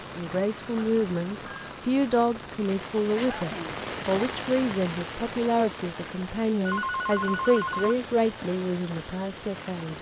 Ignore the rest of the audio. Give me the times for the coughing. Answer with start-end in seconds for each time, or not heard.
3.1-4.3.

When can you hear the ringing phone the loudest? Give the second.
7 s.